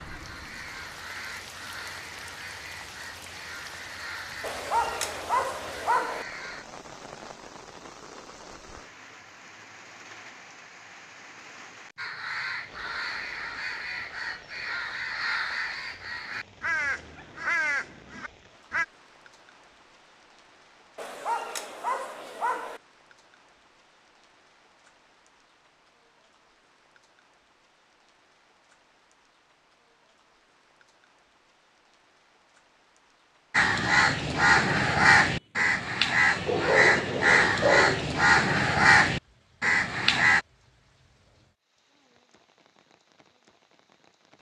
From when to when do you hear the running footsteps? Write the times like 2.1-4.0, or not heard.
not heard.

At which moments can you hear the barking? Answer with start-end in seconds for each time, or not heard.
4.4-6.2, 20.9-22.8, 36.5-38.0.